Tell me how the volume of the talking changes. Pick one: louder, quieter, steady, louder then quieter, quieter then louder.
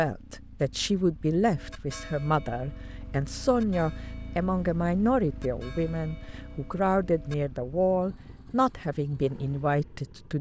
steady.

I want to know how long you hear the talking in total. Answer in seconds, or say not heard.
10 s.